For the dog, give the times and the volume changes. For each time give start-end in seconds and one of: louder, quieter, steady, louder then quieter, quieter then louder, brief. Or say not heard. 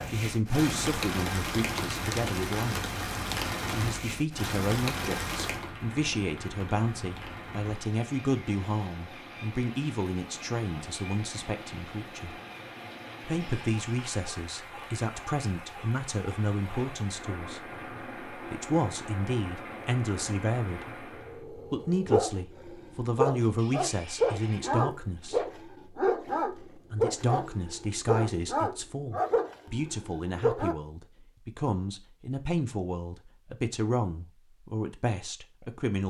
21.1-30.8 steady.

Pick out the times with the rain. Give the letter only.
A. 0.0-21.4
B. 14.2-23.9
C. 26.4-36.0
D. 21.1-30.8
A.